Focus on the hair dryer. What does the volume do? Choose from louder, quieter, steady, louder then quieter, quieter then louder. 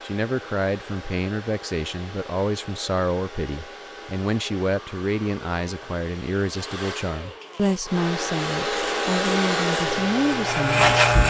louder.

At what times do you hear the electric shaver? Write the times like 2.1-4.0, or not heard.
8.5-11.2.